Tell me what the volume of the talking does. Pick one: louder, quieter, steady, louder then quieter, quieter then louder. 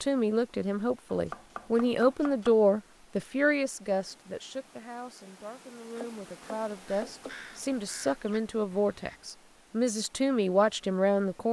quieter then louder.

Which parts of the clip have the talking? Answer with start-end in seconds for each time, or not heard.
0.0-11.4.